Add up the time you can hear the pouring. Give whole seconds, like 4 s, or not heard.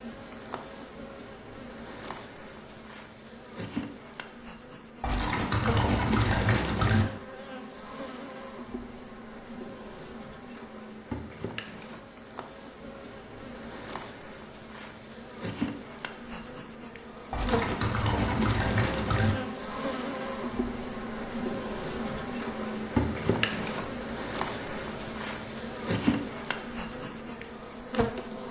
4 s.